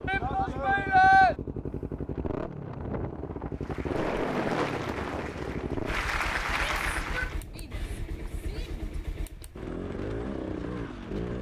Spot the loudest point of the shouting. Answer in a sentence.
The volume of the shouting peaks at 1 second.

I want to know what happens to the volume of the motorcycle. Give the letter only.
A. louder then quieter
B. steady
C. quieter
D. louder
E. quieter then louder
E.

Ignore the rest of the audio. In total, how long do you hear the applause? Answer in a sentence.
The applause can be heard for 4 seconds in total.